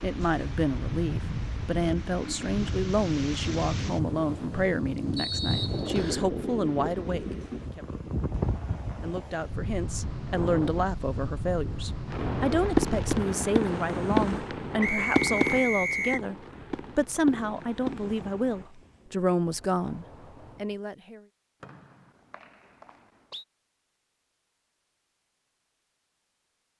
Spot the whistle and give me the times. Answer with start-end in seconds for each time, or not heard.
5.2-6.3, 14.8-16.2, 21.6-23.4.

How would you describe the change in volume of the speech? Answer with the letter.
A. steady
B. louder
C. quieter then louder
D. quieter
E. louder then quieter
A.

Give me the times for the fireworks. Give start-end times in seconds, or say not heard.
12.1-18.7.